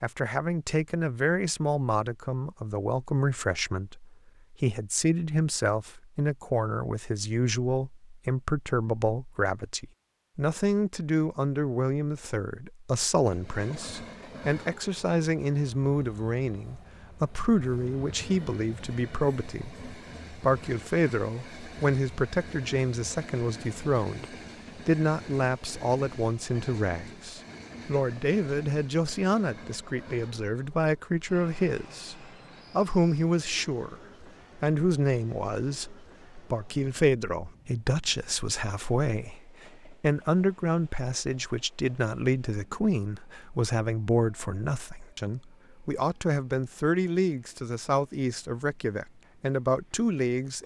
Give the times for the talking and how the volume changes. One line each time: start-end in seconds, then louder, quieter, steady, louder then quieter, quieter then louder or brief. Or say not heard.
0.0-50.6 steady.